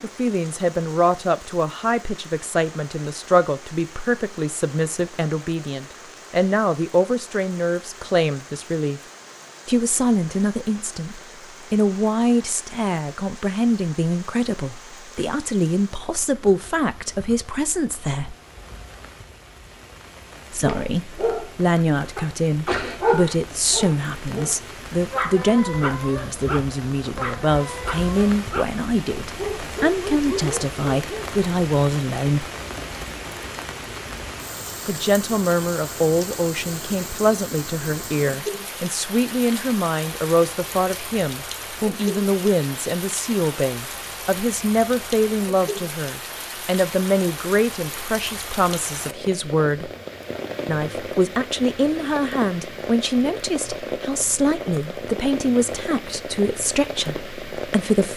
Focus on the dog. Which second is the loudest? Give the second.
23 s.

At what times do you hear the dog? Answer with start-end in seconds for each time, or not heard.
20.6-31.4.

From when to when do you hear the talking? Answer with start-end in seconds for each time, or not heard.
0.0-9.0, 9.7-18.4, 20.5-32.5, 34.9-49.9, 50.6-58.1.